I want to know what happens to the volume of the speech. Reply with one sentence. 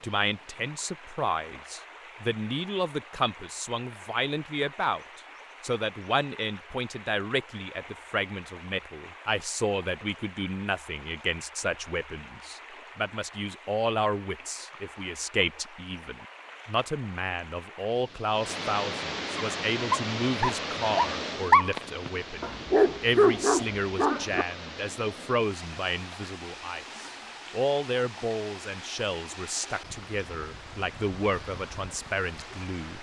The loudness of the speech stays about the same.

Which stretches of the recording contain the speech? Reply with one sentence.
You can hear the speech from 0.0 to 32.9 s.